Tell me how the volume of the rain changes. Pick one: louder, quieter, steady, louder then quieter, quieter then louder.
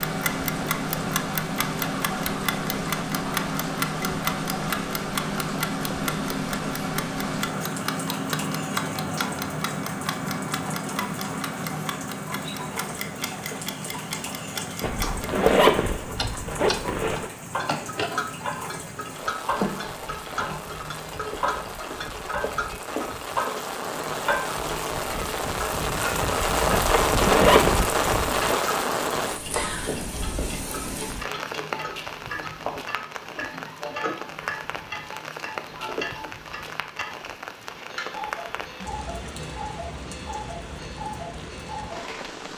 louder then quieter.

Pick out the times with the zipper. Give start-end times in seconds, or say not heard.
14.8-17.3, 26.7-28.6.